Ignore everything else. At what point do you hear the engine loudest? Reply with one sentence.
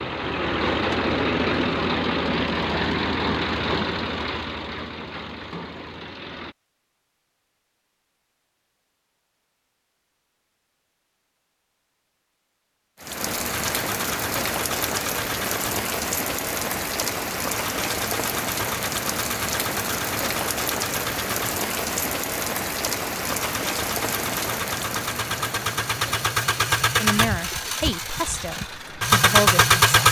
The loudest moment of the engine is at 30 seconds.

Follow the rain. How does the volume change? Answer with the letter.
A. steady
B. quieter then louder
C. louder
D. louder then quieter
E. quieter
E.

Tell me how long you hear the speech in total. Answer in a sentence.
You can hear the speech for 3 seconds altogether.